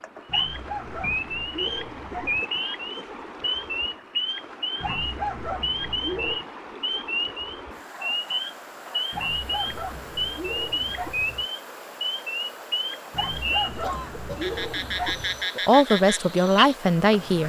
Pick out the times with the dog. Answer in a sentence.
You can hear the dog from 0.2 to 2.5 s, from 4.8 to 6.4 s, from 9.1 to 11.4 s and from 13.1 to 15.4 s.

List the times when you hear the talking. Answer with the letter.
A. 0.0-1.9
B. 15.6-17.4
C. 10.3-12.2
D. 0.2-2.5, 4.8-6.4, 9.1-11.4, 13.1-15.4
B.